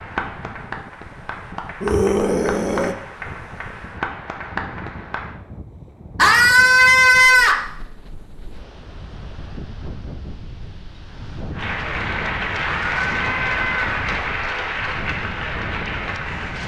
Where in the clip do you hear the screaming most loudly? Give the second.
7 s.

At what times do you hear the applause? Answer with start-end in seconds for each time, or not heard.
0.0-5.3, 11.6-16.6.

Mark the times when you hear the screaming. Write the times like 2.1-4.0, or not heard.
1.8-3.0, 6.2-7.7, 12.6-14.0.